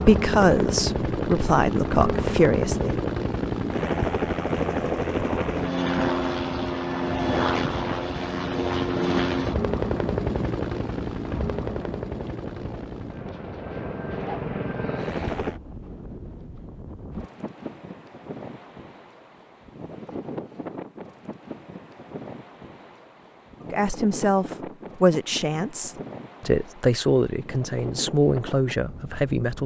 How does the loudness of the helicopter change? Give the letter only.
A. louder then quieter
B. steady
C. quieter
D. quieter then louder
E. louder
C.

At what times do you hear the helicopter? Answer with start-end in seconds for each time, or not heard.
0.0-15.6.